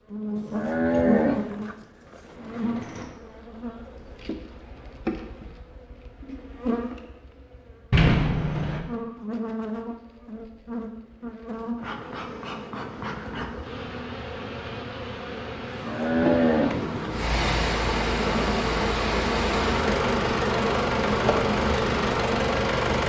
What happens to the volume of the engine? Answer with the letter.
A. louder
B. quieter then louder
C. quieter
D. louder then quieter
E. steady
E.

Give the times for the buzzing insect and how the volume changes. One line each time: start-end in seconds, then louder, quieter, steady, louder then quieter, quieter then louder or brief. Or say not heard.
0.1-23.0 louder.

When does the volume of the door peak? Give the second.
8 s.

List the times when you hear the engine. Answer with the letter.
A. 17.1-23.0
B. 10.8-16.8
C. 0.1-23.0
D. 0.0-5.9
A.